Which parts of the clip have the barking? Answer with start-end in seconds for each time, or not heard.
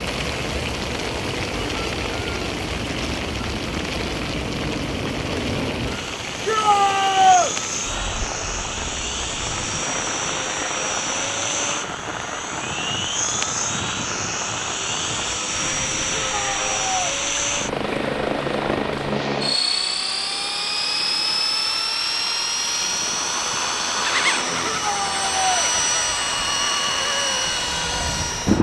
not heard.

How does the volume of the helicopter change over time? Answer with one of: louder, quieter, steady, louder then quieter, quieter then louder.
louder.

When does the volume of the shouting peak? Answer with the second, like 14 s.
7 s.